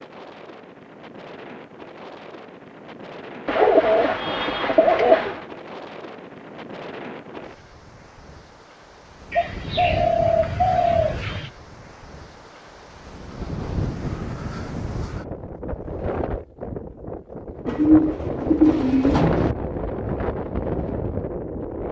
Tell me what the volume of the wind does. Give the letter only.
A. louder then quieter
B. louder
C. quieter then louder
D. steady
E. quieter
B.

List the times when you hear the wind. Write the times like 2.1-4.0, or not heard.
0.0-21.8.